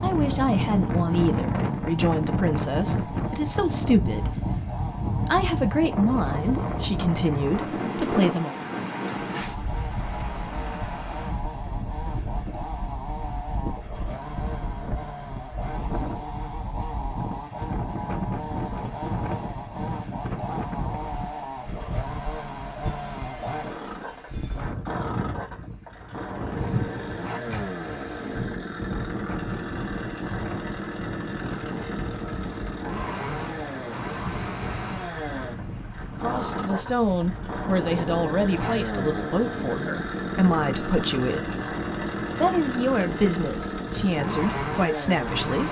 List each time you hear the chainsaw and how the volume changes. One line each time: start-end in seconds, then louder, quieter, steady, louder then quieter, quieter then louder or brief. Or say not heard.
0.1-45.6 louder.